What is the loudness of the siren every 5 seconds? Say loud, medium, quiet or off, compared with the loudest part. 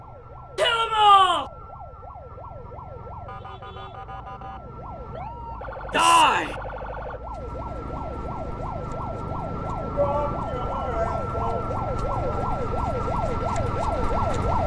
quiet, medium, loud.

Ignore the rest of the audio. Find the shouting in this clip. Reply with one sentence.
You can hear the shouting from 0.6 to 1.4 s, from 5.9 to 6.5 s and from 9.9 to 12.5 s.